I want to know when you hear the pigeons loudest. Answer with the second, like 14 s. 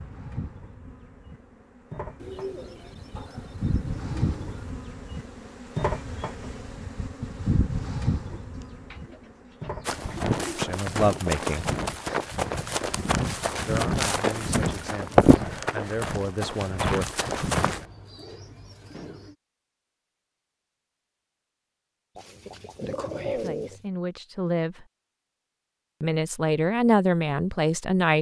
23 s.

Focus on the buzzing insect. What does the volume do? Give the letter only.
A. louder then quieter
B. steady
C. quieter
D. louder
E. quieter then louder
D.